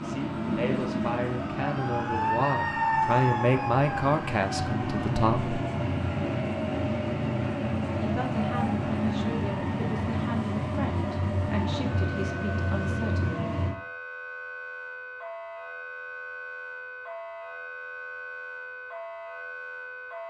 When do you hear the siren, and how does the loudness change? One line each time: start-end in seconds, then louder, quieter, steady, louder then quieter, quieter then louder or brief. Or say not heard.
0.0-20.2 quieter.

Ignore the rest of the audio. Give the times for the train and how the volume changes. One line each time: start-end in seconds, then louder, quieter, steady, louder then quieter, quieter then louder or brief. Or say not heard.
0.0-13.8 steady.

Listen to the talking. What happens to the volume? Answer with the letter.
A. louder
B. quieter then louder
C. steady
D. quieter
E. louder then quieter
E.